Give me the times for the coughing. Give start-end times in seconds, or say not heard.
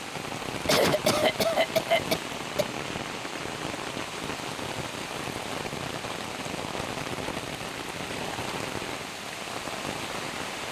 0.7-2.6.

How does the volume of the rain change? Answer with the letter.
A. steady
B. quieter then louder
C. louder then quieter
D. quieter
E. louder
A.